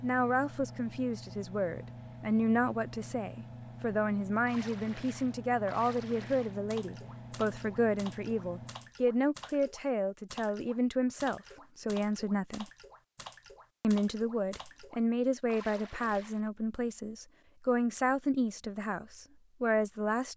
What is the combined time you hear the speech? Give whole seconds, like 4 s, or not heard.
19 s.